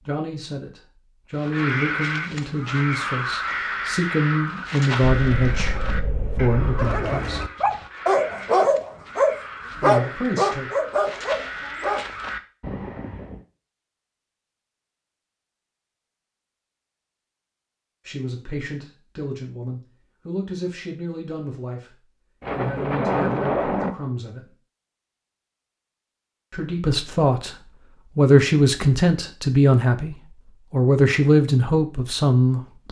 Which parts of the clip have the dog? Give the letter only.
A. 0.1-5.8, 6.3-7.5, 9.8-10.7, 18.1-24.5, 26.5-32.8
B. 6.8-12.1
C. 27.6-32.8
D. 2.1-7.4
B.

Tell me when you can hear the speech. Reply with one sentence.
You can hear the speech from 0.1 to 5.8 s, from 6.3 to 7.5 s, from 9.8 to 10.7 s, from 18.1 to 24.5 s and from 26.5 to 32.8 s.